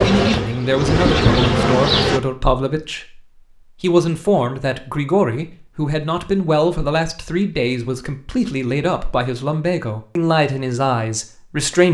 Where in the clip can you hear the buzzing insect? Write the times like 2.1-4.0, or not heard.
0.0-2.2.